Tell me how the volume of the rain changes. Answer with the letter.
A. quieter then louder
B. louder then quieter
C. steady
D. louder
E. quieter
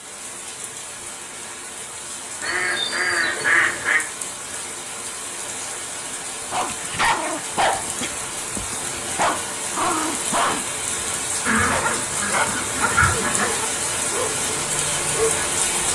D.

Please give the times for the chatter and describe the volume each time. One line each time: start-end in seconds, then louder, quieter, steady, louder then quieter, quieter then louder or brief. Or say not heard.
not heard.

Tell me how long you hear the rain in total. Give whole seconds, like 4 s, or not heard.
16 s.